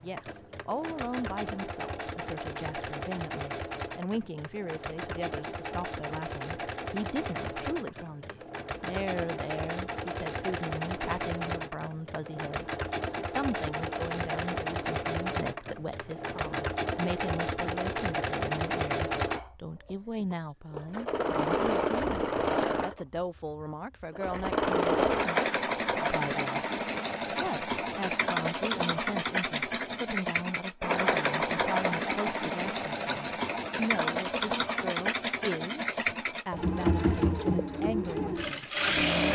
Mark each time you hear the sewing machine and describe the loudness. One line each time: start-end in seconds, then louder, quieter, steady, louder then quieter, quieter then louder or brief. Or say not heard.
0.0-39.3 louder.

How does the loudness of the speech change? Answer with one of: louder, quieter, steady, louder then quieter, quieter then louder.
steady.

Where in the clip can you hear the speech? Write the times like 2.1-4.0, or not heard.
0.0-12.7, 13.3-39.3.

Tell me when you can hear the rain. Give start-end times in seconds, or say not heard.
not heard.